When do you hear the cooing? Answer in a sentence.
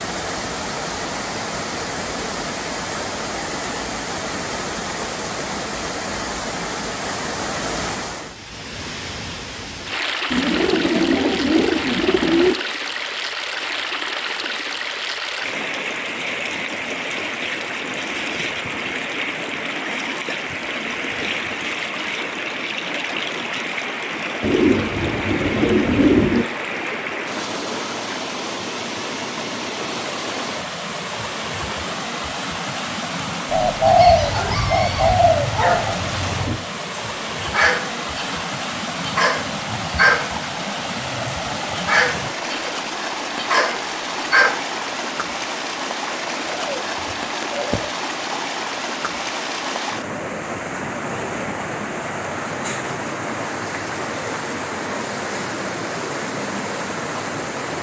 The cooing can be heard from 10.3 to 12.6 s, from 24.4 to 26.4 s, from 33.5 to 36.0 s and from 46.5 to 47.9 s.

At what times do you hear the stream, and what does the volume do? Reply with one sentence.
The stream can be heard from 0.0 to 57.7 s, at a steady volume.